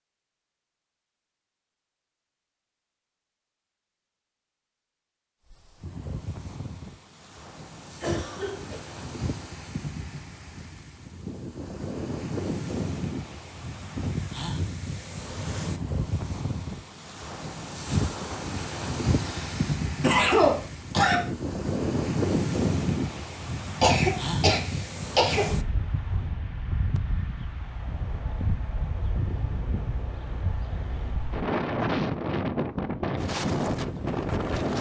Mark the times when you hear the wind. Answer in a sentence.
You can hear the wind from 5.5 to 34.7 s.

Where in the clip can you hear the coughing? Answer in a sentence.
The coughing can be heard from 8.0 to 8.8 s, from 19.2 to 21.2 s and from 23.8 to 25.5 s.